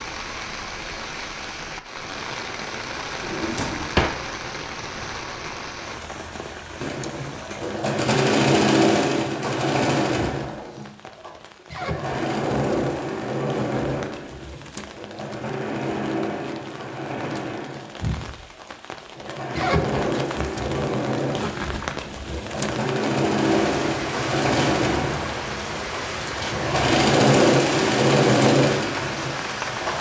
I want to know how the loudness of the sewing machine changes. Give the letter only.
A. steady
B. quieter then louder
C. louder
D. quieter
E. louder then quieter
B.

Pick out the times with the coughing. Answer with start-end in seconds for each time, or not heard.
not heard.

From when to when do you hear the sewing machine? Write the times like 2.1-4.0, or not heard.
6.8-29.9.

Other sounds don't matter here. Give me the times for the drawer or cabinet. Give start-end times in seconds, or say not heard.
3.2-4.2.